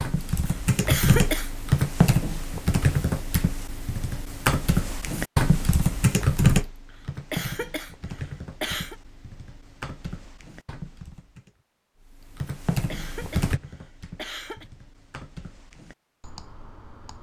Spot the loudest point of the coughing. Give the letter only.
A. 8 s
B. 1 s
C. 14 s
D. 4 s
B.